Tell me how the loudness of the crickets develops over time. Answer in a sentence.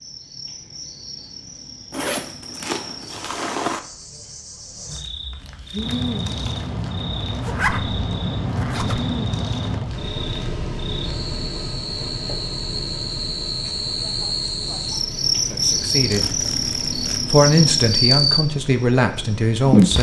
The loudness of the crickets goes up.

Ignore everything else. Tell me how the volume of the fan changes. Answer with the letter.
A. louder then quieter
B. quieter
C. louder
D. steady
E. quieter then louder
B.